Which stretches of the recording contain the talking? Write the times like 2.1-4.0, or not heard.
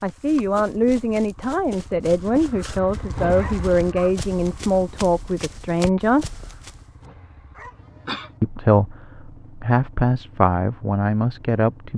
0.0-6.4, 8.4-11.9.